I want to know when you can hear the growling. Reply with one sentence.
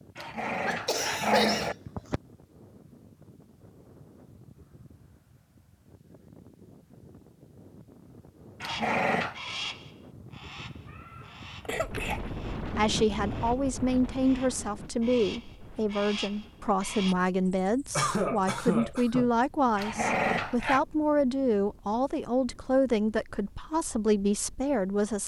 You can hear the growling from 0.1 to 1.8 s, from 8.6 to 9.4 s and from 19.8 to 20.8 s.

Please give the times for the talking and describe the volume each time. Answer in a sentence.
The talking can be heard from 12.8 to 25.2 s, at a steady volume.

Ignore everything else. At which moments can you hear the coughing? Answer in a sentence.
You can hear the coughing from 0.1 to 2.2 s, from 10.8 to 12.2 s and from 17.9 to 19.3 s.